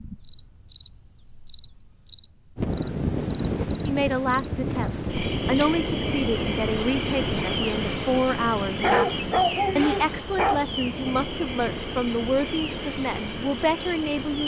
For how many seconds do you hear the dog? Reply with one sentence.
The dog can be heard for 2 seconds in total.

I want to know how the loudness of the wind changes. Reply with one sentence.
The volume of the wind goes down.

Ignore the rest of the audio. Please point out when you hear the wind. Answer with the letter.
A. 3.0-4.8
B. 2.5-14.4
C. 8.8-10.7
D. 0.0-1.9
B.